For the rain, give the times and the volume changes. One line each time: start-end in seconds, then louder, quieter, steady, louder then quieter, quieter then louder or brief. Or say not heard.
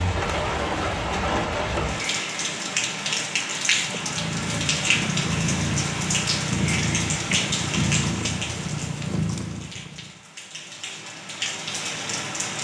0.0-12.5 quieter.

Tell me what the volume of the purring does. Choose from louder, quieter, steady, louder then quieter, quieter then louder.
steady.